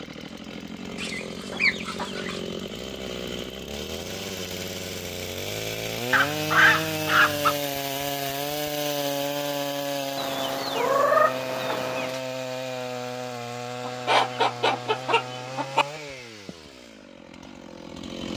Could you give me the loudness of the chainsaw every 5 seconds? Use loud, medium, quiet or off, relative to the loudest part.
medium, loud, loud, medium.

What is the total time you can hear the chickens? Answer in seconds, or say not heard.
7 s.